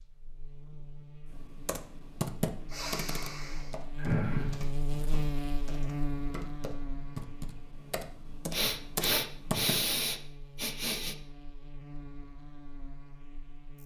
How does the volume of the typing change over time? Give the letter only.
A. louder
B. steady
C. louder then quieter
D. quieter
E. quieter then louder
E.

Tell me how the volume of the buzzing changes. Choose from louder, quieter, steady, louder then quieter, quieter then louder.
louder then quieter.